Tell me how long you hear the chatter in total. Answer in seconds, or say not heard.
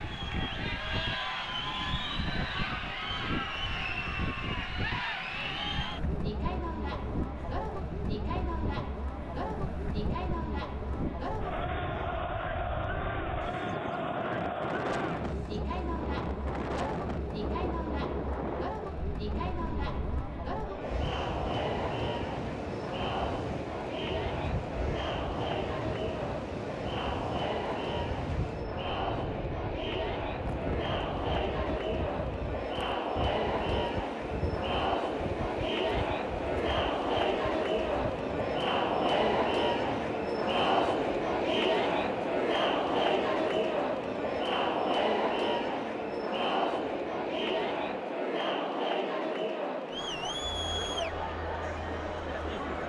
53 s.